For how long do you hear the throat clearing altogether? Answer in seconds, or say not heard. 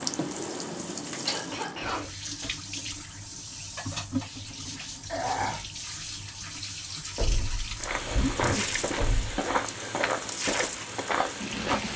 2 s.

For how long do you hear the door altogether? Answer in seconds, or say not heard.
3 s.